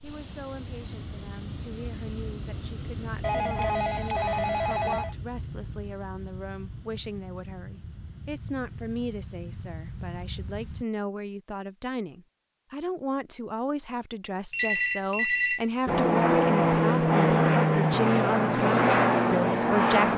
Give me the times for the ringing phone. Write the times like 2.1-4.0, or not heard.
3.2-5.2, 14.5-15.7.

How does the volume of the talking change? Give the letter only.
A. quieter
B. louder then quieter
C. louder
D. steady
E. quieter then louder
C.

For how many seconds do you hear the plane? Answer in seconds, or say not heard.
15 s.